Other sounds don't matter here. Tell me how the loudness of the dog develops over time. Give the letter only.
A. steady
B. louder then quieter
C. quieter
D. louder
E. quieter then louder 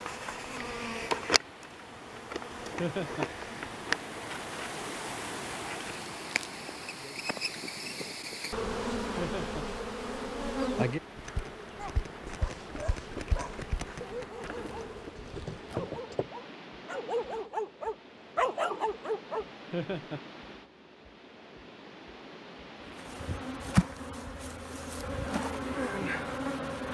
D.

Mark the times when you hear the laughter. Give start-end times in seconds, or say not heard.
2.8-3.2, 9.2-9.7, 19.7-20.2.